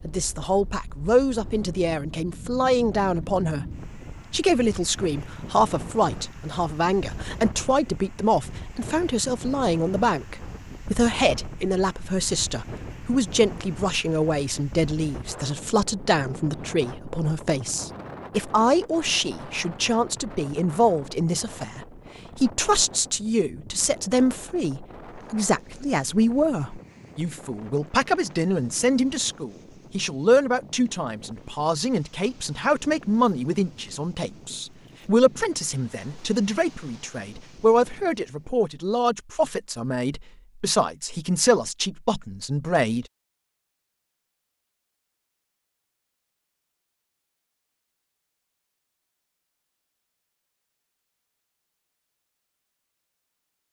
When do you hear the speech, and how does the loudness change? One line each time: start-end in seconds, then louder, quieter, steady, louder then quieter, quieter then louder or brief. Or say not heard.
0.0-43.0 steady.